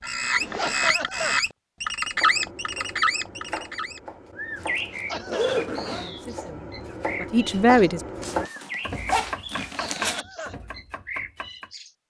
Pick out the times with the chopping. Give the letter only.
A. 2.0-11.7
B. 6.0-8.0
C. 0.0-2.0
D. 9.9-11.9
A.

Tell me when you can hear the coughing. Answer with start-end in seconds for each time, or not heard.
0.6-1.4, 5.0-5.7, 9.8-10.6.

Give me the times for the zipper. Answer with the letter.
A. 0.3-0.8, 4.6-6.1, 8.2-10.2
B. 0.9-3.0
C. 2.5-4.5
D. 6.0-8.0
A.